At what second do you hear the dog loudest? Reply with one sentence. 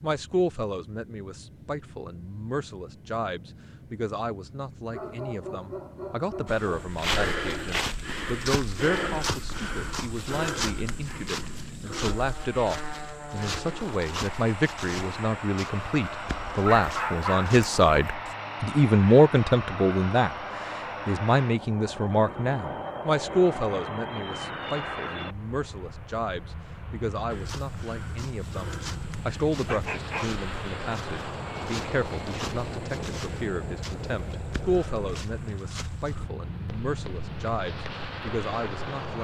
The volume of the dog peaks at 17 seconds.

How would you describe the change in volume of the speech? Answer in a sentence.
The loudness of the speech goes up, then down.